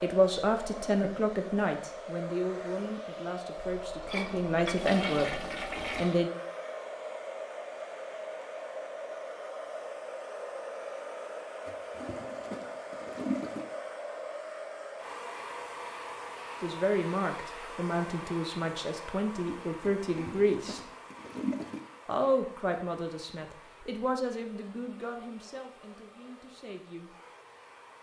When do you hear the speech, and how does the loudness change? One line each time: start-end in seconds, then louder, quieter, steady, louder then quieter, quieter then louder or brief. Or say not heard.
0.0-6.3 quieter then louder
16.6-20.8 steady
22.1-27.1 quieter.